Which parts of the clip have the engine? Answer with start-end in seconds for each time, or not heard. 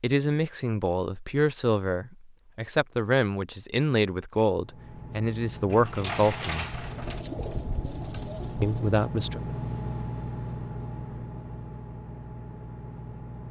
4.5-13.4.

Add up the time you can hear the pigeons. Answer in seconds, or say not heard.
2 s.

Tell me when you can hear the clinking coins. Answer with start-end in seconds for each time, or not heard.
5.7-7.2.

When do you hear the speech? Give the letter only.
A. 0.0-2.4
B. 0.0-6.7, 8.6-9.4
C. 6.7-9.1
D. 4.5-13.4
B.